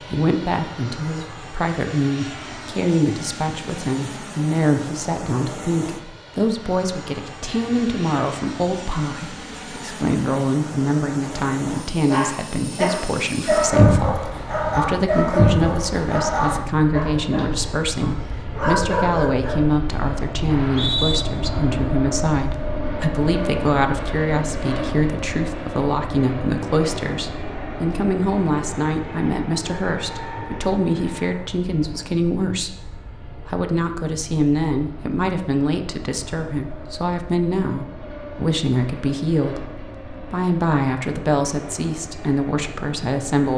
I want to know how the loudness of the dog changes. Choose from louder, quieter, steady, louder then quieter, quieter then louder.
quieter then louder.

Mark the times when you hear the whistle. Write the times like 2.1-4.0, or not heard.
20.4-21.2.